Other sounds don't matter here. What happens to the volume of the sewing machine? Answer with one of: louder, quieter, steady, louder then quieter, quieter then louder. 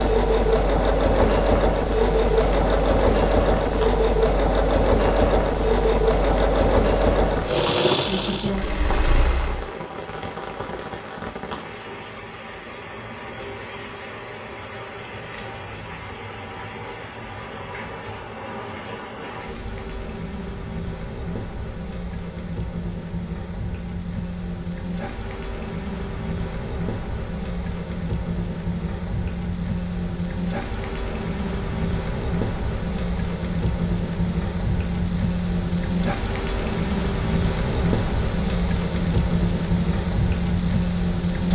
steady.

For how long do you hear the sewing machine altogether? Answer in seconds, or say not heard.
10 s.